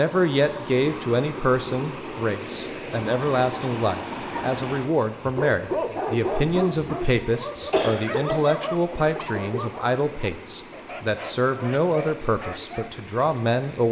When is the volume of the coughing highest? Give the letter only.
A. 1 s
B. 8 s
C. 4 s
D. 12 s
B.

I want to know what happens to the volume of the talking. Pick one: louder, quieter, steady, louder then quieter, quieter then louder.
steady.